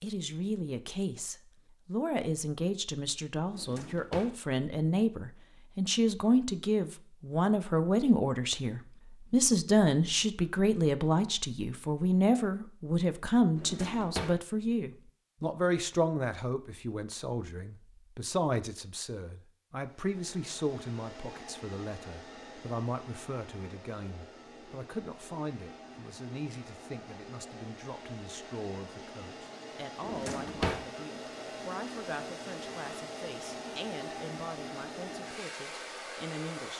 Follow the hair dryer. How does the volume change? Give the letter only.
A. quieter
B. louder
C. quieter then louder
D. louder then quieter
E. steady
B.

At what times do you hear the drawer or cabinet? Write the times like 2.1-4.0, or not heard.
3.5-4.3, 13.6-14.4, 30.0-30.9.